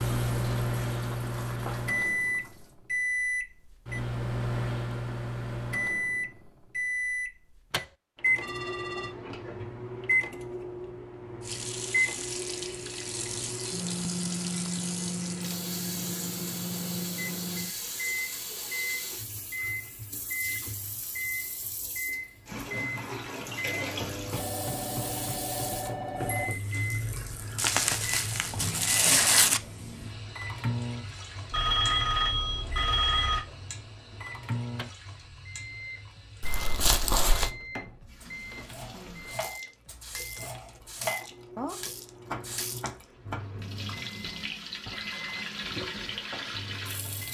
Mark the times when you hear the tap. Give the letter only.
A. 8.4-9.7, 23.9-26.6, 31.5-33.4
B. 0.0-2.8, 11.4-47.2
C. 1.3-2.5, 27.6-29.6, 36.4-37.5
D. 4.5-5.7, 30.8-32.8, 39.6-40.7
B.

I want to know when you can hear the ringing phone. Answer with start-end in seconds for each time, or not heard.
8.4-9.7, 23.9-26.6, 31.5-33.4.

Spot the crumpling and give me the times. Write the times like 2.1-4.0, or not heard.
1.3-2.5, 27.6-29.6, 36.4-37.5.